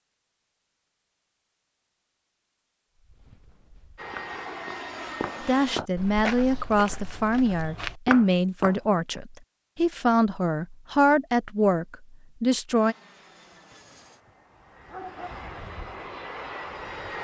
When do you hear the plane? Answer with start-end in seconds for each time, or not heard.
4.0-5.8, 12.7-17.1.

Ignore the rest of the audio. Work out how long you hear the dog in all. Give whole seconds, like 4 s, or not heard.
2 s.